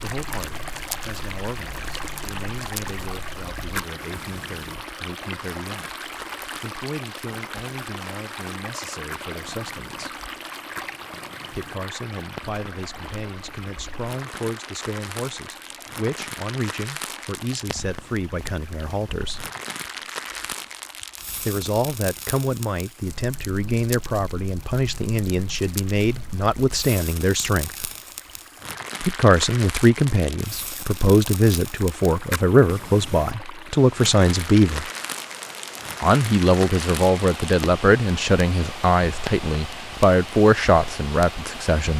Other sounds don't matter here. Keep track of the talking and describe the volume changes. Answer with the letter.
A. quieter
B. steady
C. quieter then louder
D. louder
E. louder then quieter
D.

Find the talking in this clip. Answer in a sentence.
You can hear the talking from 0.0 to 10.2 s, from 11.5 to 19.5 s, from 21.4 to 27.9 s, from 29.0 to 34.9 s and from 36.0 to 41.9 s.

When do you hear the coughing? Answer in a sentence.
The coughing can't be heard in this clip.